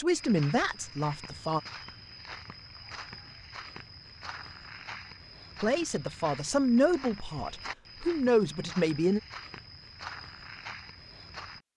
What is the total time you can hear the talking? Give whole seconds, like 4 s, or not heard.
5 s.